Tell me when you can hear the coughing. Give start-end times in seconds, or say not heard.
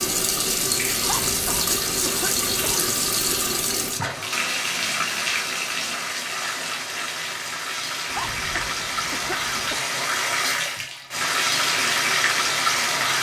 1.0-2.8, 8.1-9.8.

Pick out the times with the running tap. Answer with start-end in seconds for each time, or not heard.
0.0-13.1.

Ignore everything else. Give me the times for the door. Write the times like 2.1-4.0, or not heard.
not heard.